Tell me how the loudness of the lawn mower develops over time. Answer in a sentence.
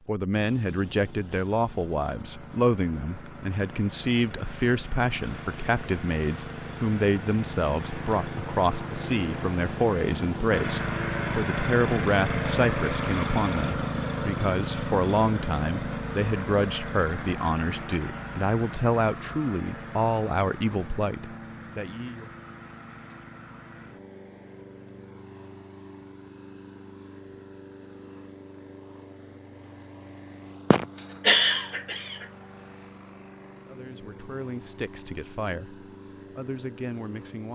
The volume of the lawn mower goes up, then down.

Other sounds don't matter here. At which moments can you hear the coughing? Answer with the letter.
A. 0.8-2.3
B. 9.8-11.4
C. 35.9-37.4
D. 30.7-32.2
D.